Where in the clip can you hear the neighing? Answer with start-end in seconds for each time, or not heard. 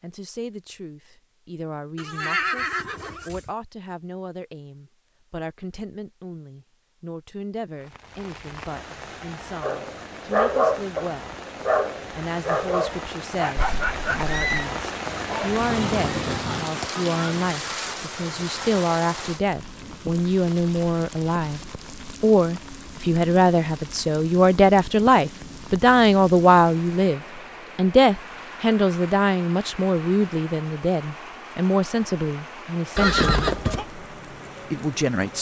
1.9-3.5, 13.6-14.7, 33.0-33.9.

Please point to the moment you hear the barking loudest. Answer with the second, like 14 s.
11 s.